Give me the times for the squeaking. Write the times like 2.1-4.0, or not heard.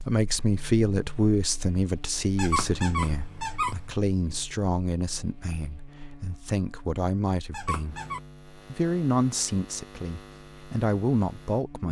2.4-3.9, 7.5-8.2.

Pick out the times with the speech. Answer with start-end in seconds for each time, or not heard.
0.0-8.0, 8.7-11.8.